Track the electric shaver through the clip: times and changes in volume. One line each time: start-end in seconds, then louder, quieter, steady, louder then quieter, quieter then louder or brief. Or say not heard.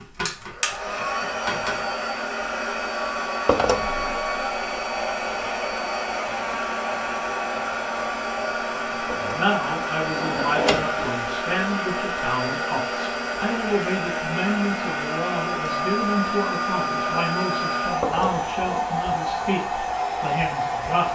not heard.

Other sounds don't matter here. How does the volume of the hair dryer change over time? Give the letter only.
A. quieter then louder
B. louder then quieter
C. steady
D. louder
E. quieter
C.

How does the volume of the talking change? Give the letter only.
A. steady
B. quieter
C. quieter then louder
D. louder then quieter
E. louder
A.